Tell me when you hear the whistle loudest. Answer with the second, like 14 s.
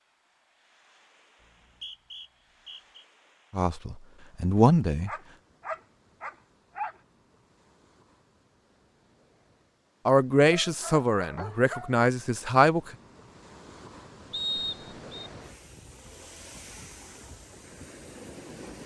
15 s.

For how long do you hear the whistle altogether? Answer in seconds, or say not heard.
3 s.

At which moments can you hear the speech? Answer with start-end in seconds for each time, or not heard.
3.5-5.1, 10.1-12.9.